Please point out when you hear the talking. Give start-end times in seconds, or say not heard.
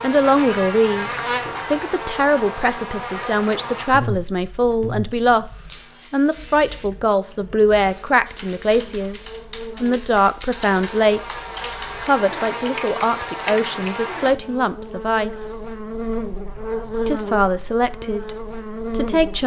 0.0-15.6, 17.1-19.4.